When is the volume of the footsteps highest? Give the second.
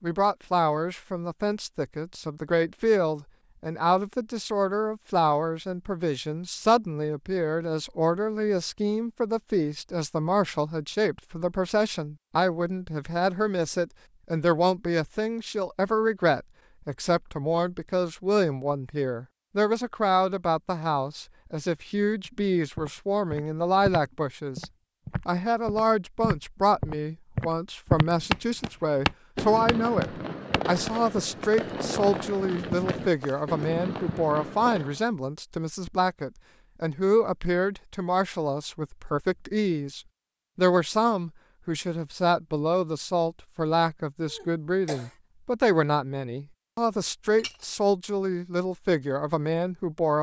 28 s.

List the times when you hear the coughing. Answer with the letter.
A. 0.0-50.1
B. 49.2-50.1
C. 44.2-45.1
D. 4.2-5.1
C.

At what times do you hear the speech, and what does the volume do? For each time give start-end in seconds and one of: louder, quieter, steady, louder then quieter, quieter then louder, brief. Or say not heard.
0.0-50.1 steady.